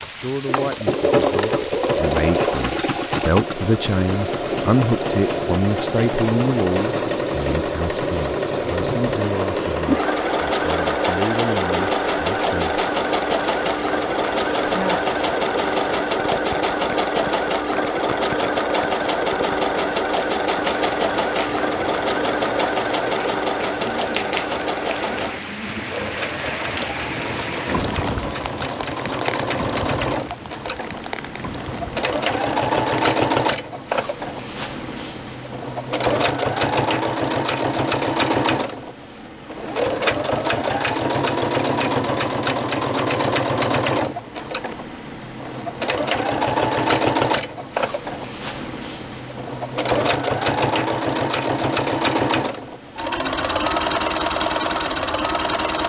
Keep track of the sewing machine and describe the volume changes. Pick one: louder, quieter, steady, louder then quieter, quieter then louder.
steady.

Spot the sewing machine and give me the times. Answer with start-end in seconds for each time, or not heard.
0.0-55.8.